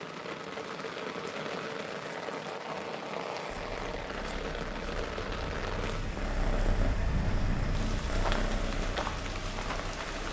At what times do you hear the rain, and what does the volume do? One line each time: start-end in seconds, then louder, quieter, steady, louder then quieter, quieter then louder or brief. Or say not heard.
0.0-10.2 steady.